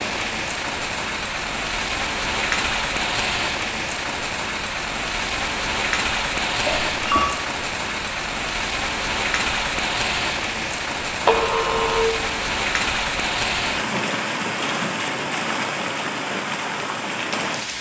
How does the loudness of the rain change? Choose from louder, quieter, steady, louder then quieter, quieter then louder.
steady.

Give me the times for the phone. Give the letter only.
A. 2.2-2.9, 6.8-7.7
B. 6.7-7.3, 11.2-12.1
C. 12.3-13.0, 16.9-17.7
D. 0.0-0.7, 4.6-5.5
B.